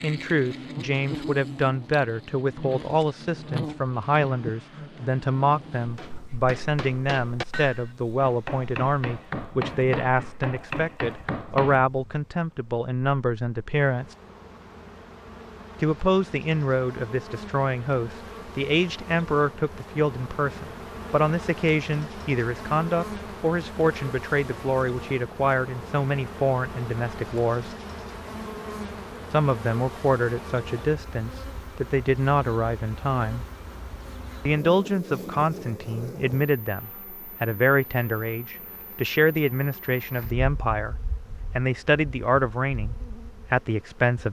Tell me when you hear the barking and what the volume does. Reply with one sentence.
You can't hear the barking here.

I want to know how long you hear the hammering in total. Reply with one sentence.
You can hear the hammering for 6 seconds altogether.